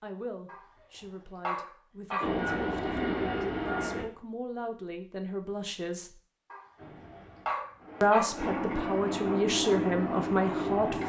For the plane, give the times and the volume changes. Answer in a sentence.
You can hear the plane briefly from 2.2 to 4.0 s; and from 6.8 to 11.0 s, getting louder.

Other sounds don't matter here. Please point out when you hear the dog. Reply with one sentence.
You can hear the dog from 0.5 to 2.2 s and from 6.5 to 8.3 s.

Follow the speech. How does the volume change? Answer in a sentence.
The loudness of the speech goes up.